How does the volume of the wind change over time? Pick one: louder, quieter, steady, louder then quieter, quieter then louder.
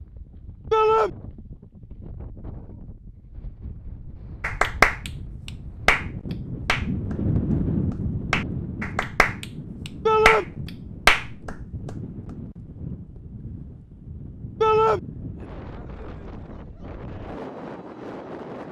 louder then quieter.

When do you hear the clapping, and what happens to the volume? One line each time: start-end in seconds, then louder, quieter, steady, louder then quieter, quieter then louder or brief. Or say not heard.
4.0-6.0 brief
6.7-11.9 louder.